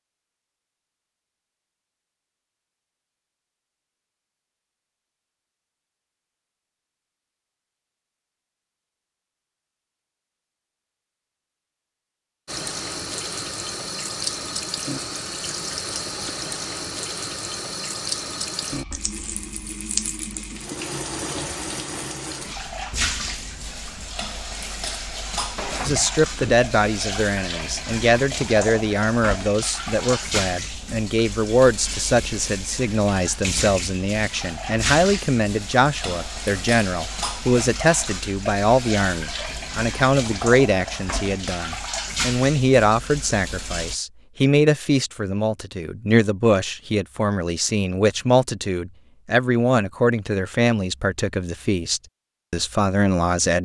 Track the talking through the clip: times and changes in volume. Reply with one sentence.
You can hear the talking from 25.9 to 53.6 s, at a steady volume.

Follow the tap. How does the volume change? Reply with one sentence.
The volume of the tap stays about the same.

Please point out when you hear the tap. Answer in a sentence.
The tap can be heard from 12.4 to 44.0 s.